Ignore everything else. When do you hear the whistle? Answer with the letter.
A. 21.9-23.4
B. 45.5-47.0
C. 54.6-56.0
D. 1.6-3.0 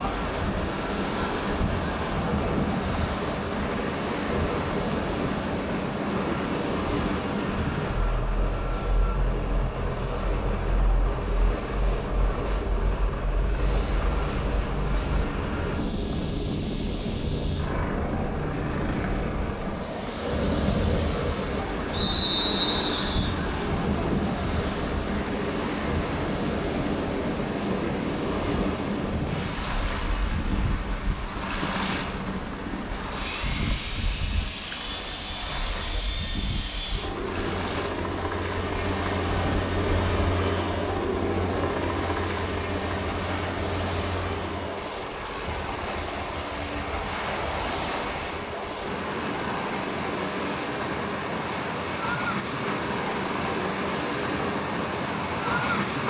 A.